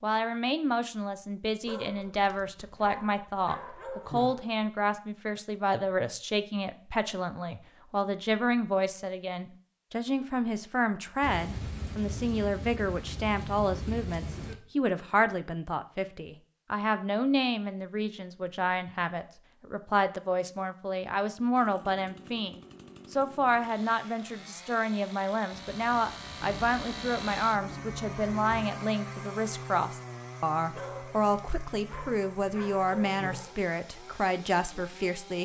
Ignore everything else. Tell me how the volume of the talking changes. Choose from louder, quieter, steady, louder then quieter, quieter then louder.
steady.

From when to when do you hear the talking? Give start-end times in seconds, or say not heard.
0.0-35.4.